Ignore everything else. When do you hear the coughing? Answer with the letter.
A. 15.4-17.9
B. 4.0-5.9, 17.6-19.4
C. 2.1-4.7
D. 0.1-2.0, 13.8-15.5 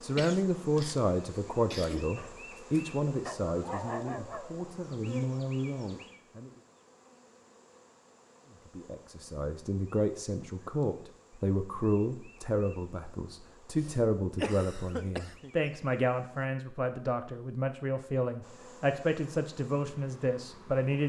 D.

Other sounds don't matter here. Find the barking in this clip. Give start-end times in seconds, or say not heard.
2.1-4.7.